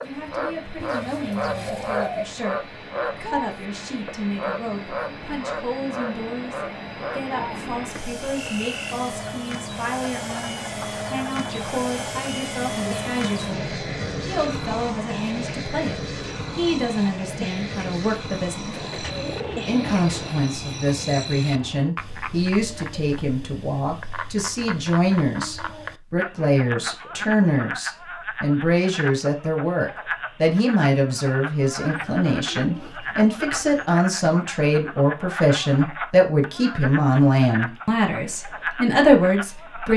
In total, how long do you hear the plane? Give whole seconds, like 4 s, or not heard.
22 s.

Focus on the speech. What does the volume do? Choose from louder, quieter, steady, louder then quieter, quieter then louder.
louder.